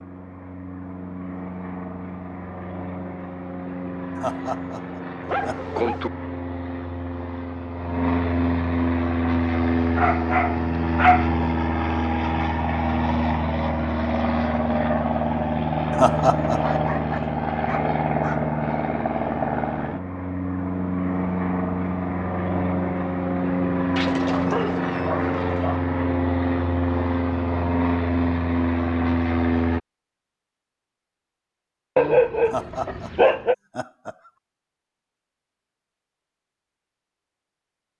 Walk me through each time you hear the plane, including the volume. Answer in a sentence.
You can hear the plane from 0.0 to 29.8 s, getting louder.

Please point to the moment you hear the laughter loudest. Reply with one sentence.
The volume of the laughter peaks at 16 seconds.